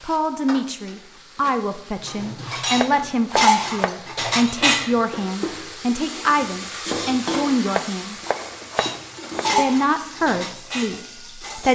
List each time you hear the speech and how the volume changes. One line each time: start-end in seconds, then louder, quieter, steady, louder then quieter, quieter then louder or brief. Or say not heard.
0.0-8.2 steady
9.6-11.7 brief.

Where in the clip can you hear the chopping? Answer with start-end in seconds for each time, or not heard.
2.8-4.0, 7.7-9.4.